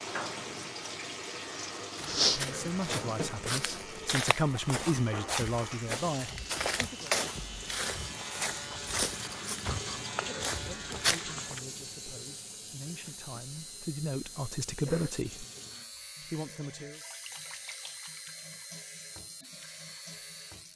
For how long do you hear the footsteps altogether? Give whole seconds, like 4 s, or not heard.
10 s.